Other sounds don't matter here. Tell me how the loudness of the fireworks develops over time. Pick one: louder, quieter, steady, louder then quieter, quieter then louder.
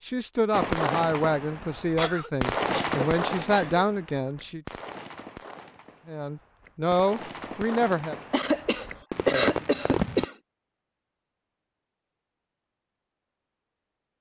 quieter then louder.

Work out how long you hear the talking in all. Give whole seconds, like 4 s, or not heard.
7 s.